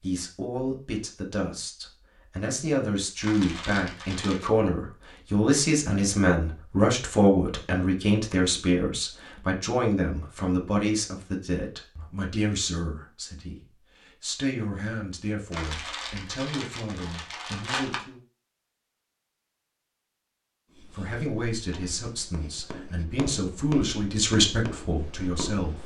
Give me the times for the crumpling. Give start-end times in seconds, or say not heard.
3.2-4.5, 15.5-18.0.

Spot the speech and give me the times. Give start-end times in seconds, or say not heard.
0.0-18.2, 20.9-25.8.